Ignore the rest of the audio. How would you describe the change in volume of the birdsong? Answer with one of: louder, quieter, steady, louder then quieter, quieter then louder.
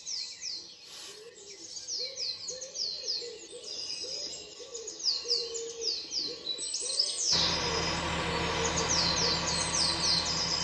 louder.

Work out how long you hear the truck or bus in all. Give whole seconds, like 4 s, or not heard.
3 s.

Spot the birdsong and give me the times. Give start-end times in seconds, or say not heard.
0.0-10.5.